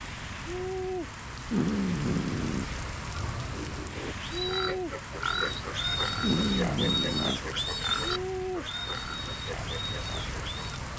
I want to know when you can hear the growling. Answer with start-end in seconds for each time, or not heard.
1.5-2.6, 6.2-7.4.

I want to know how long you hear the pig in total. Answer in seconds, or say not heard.
8 s.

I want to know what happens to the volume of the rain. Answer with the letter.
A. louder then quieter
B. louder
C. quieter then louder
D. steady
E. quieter
D.